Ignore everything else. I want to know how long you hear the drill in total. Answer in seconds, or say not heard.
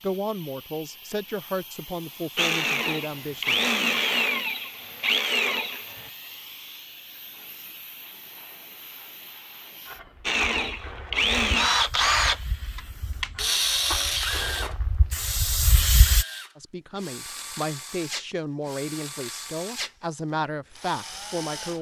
15 s.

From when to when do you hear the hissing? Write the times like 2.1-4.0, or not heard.
0.0-16.2.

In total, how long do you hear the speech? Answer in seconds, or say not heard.
9 s.